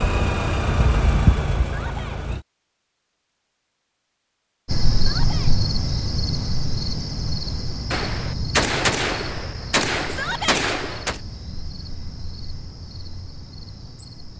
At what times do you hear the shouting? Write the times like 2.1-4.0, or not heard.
1.8-2.2, 5.0-5.5, 10.1-10.7.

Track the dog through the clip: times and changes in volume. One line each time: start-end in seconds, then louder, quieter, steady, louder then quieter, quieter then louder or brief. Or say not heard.
not heard.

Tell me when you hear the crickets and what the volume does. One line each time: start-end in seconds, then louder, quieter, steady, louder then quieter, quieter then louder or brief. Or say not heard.
4.7-14.3 quieter.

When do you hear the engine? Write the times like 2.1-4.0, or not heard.
0.0-2.5.